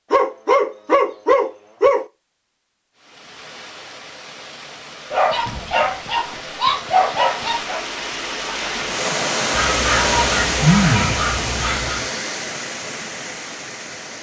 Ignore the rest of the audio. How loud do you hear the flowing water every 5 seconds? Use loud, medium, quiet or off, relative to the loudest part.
quiet, loud, loud.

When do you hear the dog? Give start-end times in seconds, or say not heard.
0.1-2.0, 5.1-7.8, 9.5-12.1.